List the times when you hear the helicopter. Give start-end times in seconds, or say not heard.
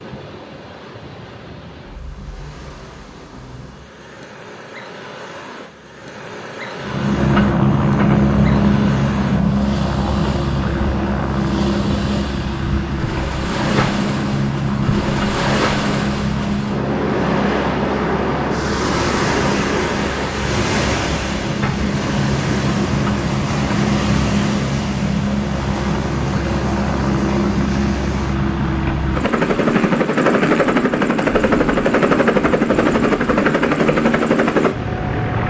6.8-35.4.